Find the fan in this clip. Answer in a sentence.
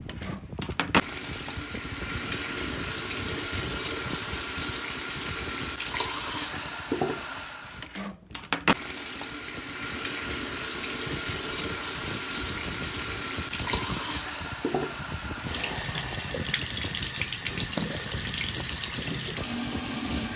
You can hear the fan from 0.0 to 20.3 s.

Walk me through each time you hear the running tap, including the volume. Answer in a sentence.
You can hear the running tap from 0.0 to 20.3 s, at a steady volume.